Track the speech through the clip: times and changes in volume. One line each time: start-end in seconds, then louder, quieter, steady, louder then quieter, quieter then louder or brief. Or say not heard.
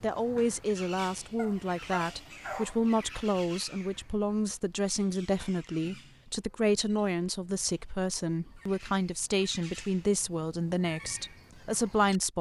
0.0-12.3 steady.